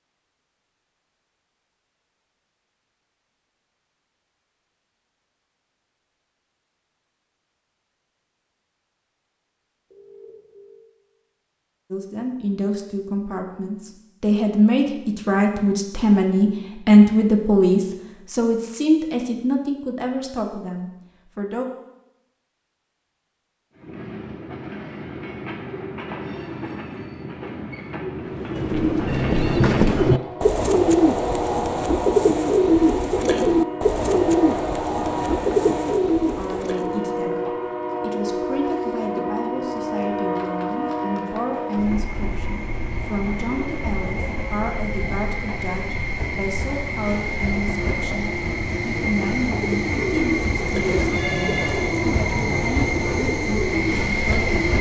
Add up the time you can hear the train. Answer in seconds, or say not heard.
31 s.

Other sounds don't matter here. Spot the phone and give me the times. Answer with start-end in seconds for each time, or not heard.
9.9-10.8, 51.1-51.9.